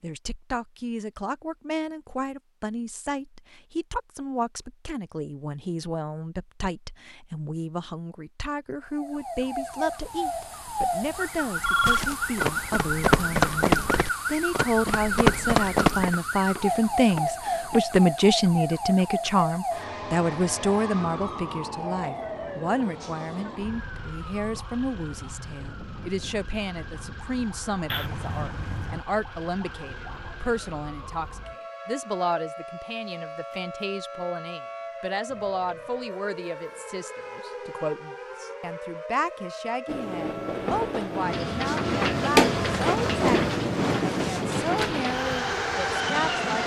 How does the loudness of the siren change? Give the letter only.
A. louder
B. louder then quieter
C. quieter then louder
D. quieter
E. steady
D.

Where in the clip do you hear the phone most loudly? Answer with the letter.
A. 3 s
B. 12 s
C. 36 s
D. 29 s
B.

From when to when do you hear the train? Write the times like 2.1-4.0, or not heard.
39.9-46.6.